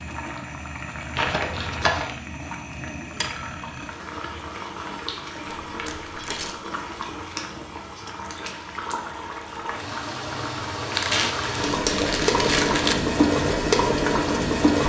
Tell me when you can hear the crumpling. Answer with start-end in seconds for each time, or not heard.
1.1-2.1, 5.5-6.5, 10.9-12.9.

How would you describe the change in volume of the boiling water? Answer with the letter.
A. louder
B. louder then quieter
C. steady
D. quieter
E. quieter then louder
A.